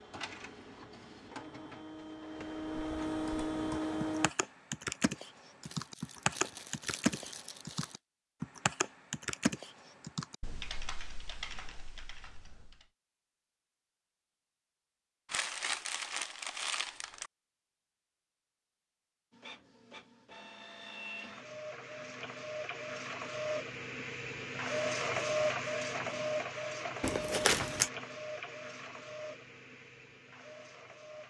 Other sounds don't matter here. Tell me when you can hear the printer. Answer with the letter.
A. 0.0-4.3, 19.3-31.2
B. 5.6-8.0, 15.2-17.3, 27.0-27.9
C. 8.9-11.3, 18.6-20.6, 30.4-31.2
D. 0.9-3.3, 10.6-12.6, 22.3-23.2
A.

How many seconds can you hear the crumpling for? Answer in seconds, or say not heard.
5 s.